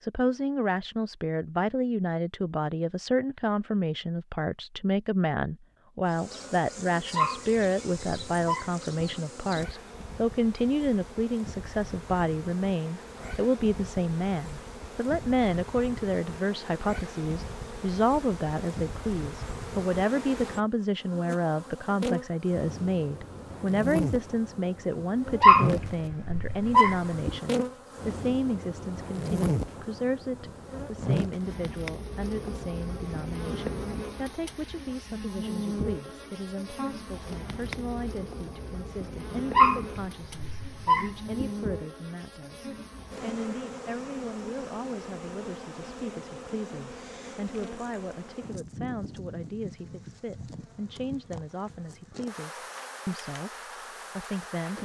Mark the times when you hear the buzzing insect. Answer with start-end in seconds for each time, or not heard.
6.0-54.8.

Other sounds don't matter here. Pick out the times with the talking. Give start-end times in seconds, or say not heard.
0.0-54.8.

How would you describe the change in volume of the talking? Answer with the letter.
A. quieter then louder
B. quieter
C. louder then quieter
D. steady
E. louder
B.